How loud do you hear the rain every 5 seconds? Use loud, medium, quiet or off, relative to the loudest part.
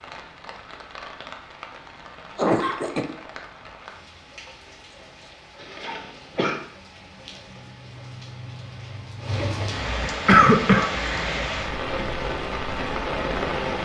quiet, medium, loud.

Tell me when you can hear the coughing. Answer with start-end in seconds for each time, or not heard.
2.4-3.0, 5.6-6.6, 10.1-10.9.